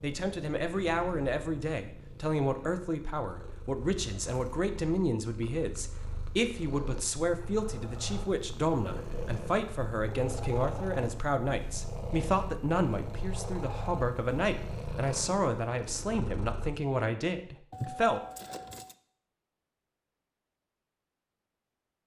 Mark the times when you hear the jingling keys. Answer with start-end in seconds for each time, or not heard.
3.8-4.5, 17.7-18.9.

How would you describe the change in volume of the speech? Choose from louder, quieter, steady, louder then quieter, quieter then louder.
steady.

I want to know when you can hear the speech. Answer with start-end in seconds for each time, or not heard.
0.0-18.2.